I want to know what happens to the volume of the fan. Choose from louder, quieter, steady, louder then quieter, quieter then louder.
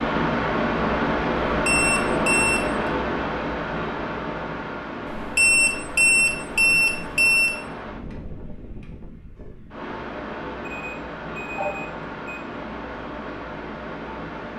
quieter.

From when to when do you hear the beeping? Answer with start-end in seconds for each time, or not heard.
1.6-2.8, 5.0-7.5, 10.7-12.4.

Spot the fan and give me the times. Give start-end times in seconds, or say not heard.
0.0-14.5.